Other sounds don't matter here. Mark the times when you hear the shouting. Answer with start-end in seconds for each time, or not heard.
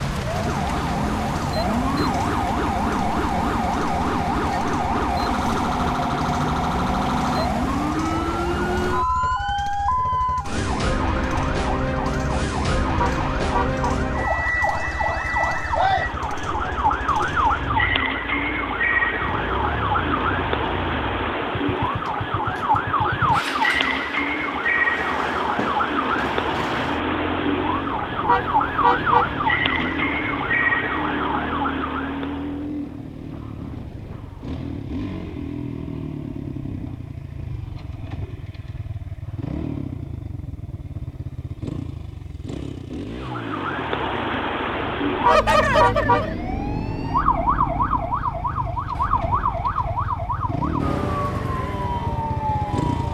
not heard.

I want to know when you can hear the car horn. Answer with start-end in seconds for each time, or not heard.
12.9-13.8, 28.2-29.3, 45.2-46.2.